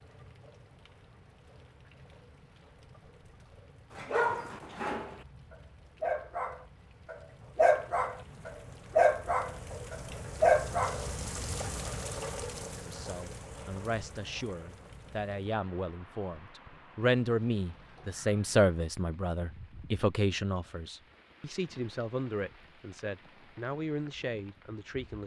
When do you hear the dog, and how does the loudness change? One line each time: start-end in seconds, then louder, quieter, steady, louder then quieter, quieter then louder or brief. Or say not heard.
4.0-11.1 louder.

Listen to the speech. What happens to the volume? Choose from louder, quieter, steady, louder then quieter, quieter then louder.
louder then quieter.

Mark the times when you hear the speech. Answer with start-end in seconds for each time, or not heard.
12.8-25.2.